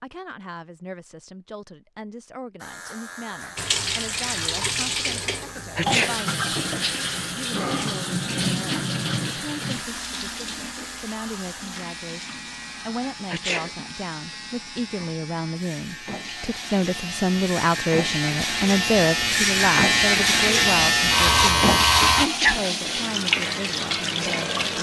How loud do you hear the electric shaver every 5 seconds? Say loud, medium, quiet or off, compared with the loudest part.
quiet, quiet, quiet, medium, loud.